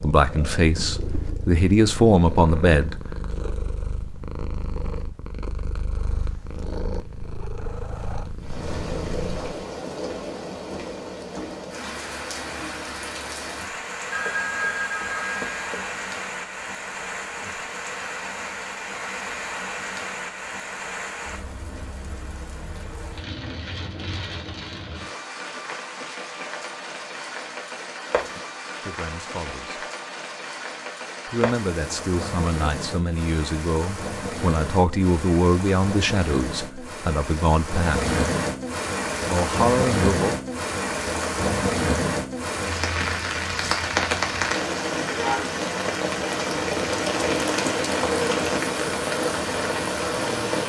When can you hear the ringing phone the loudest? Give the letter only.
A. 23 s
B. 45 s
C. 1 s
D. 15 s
D.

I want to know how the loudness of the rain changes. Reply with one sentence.
The volume of the rain goes up.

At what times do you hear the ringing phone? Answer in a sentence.
The ringing phone can be heard from 14.1 to 15.9 s.